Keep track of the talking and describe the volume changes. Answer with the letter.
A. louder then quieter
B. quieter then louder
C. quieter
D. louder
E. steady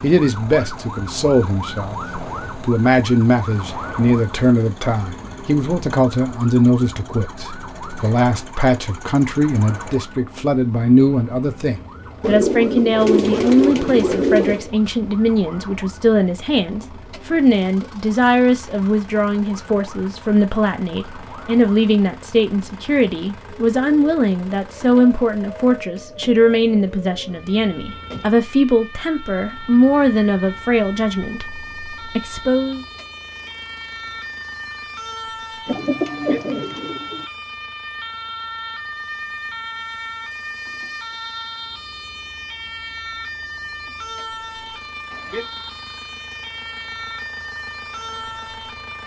E.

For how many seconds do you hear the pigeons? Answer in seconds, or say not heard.
4 s.